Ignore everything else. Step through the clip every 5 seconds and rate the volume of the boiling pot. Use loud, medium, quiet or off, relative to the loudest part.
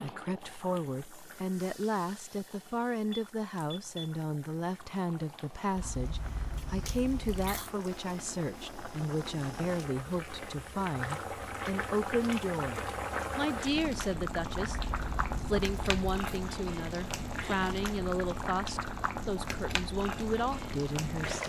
quiet, medium, loud, loud, loud.